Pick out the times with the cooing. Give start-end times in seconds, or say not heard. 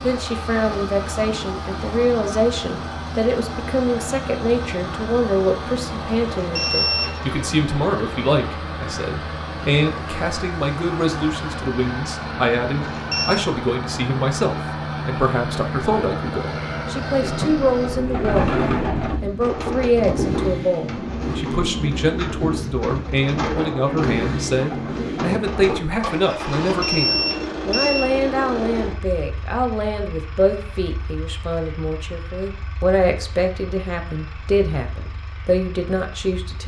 17.2-25.8.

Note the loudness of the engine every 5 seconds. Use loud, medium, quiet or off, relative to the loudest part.
loud, loud, loud, loud, loud, loud, quiet, quiet.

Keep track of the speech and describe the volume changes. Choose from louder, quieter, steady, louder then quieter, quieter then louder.
steady.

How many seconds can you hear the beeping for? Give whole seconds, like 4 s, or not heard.
3 s.